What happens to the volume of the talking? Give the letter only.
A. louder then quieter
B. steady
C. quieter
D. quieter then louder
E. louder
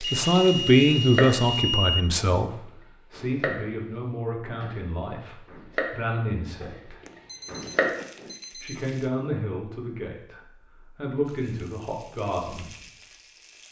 C.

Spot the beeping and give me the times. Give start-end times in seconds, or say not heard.
0.2-2.0, 7.0-8.8.